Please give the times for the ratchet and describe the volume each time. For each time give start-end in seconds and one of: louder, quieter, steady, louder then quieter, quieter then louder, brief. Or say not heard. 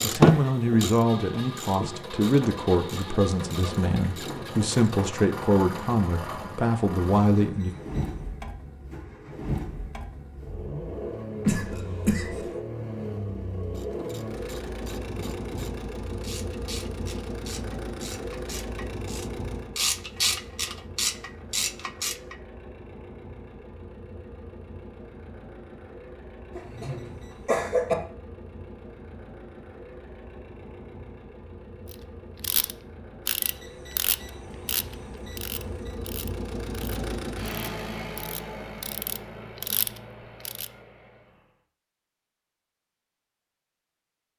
0.0-5.0 quieter
13.6-22.4 louder
31.9-40.7 quieter then louder.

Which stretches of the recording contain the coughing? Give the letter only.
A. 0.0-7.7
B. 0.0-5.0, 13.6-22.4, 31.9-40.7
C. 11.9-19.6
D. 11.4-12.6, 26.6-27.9
D.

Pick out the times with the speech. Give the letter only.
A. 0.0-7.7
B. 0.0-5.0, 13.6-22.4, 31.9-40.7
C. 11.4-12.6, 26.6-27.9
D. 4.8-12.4
A.